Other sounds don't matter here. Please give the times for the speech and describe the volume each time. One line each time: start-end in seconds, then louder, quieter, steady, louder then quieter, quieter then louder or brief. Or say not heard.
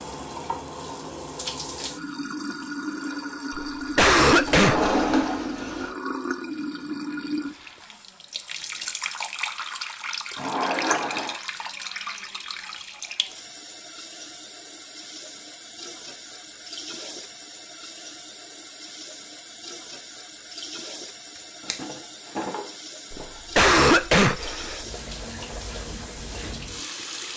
not heard.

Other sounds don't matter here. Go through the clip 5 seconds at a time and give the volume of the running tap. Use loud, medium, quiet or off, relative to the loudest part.
loud, loud, loud, medium, medium, loud.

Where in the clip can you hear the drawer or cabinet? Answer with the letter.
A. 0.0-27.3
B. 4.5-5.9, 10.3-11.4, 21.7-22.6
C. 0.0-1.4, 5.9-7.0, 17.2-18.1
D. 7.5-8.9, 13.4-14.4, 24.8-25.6
B.